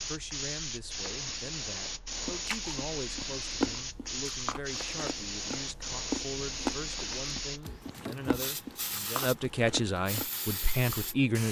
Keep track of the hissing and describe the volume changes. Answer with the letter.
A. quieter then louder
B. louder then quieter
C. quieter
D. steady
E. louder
D.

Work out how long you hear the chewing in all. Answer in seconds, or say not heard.
8 s.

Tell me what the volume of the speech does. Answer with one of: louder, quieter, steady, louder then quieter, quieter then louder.
louder.